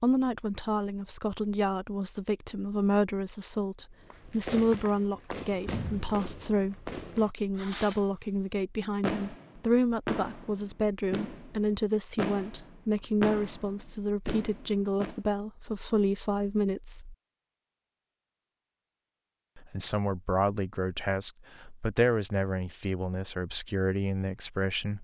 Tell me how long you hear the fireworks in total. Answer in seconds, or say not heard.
10 s.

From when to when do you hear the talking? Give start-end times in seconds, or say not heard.
0.0-17.1, 19.6-24.9.